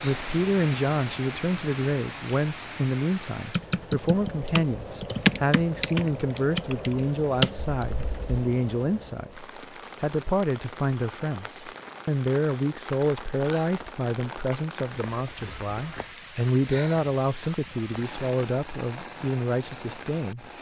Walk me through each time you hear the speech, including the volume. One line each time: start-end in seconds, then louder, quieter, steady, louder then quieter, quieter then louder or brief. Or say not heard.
0.0-20.4 steady.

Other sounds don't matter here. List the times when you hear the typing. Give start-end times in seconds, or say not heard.
3.5-8.2.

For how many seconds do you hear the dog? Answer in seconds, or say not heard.
not heard.